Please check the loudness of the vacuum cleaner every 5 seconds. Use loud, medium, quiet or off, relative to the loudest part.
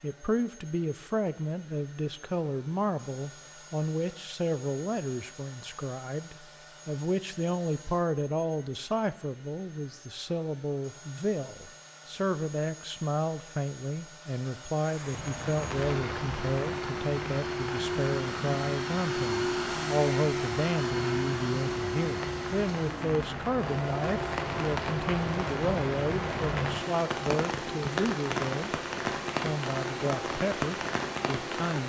quiet, quiet, quiet, loud, loud, medium, medium.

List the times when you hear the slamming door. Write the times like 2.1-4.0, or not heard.
not heard.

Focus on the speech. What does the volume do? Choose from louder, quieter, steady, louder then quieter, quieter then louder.
steady.